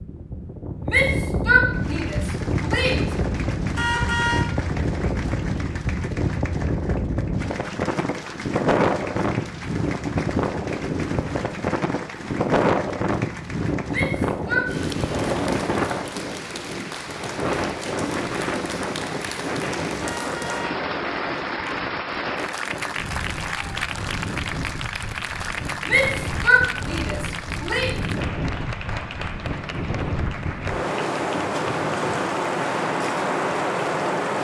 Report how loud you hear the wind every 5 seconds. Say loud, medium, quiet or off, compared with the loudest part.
loud, loud, loud, loud, medium, medium, loud.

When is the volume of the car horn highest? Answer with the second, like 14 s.
4 s.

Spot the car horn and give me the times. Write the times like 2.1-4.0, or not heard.
3.8-4.5, 20.0-20.8.